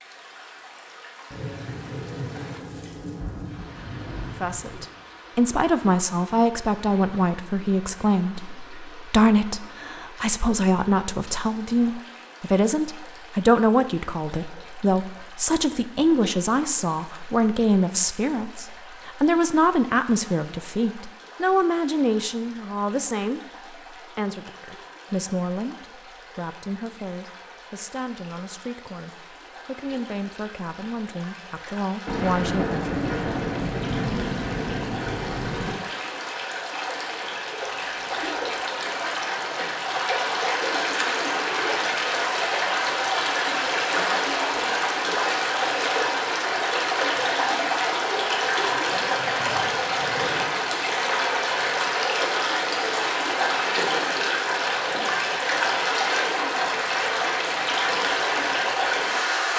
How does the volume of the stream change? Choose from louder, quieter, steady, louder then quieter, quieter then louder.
louder.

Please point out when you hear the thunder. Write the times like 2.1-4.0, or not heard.
1.3-4.8, 32.0-35.7, 48.6-50.5.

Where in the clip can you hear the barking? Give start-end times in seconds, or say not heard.
not heard.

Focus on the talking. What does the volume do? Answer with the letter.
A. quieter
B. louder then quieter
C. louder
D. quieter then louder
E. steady
A.